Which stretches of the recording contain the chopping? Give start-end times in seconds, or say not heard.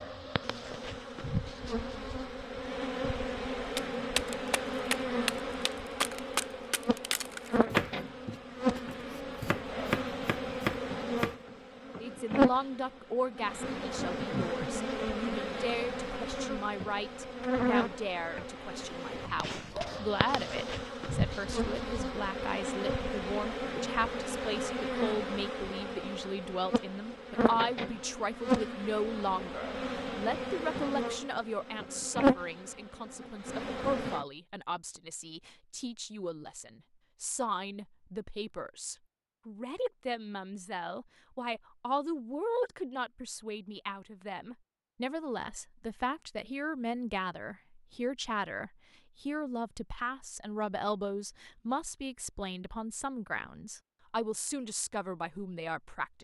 3.8-11.3.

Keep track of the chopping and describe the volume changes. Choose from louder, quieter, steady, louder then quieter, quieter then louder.
quieter then louder.